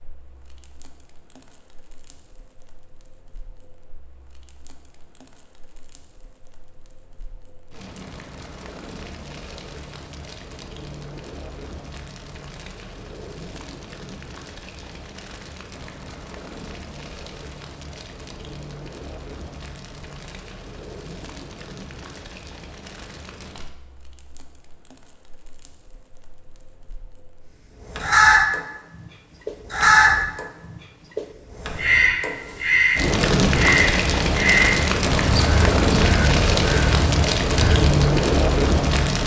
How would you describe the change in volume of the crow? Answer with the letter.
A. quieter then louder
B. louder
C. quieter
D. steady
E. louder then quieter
C.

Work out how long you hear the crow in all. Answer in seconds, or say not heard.
10 s.